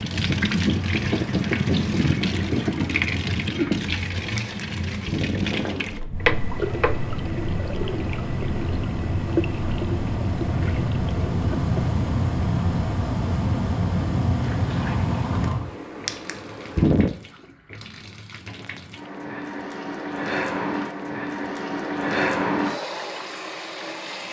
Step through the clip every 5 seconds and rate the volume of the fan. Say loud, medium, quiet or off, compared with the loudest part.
loud, medium, loud, loud, off.